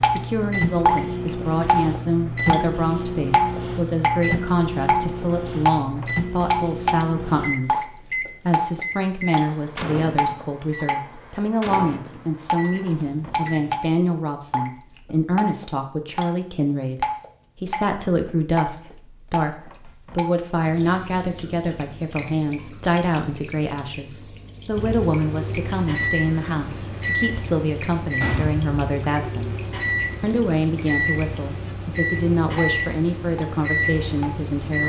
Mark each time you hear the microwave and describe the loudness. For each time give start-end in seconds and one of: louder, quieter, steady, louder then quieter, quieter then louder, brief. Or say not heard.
0.0-13.8 quieter
24.7-34.8 steady.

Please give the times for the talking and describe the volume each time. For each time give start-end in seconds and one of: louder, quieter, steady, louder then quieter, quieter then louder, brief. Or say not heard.
0.1-34.8 steady.